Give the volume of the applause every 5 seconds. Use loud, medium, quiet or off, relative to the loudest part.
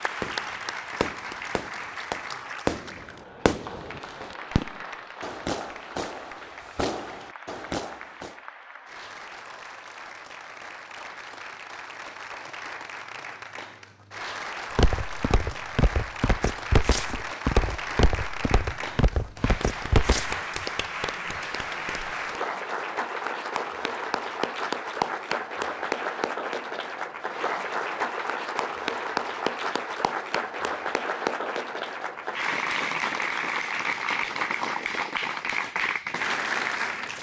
medium, quiet, medium, medium, loud, loud, loud, loud.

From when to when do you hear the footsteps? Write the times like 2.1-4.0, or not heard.
14.8-20.4.